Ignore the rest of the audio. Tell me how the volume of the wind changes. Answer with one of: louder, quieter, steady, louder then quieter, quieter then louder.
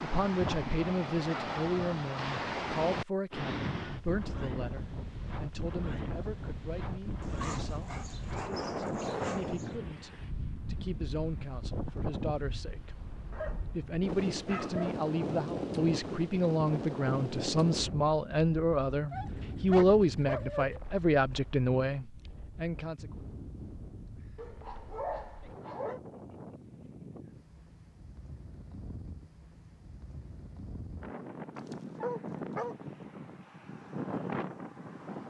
quieter then louder.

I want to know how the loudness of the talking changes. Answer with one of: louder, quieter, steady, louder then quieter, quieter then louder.
quieter then louder.